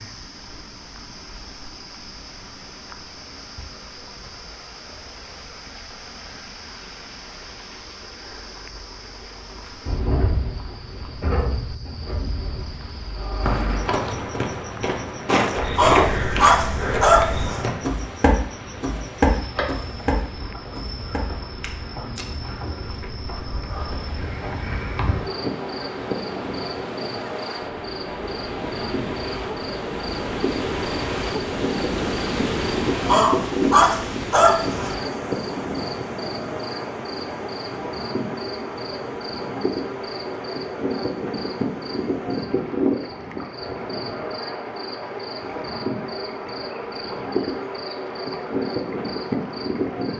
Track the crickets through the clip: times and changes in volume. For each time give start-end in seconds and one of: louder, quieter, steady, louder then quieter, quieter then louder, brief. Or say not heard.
0.0-50.1 louder.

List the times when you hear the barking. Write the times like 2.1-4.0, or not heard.
15.8-17.6, 33.0-35.0.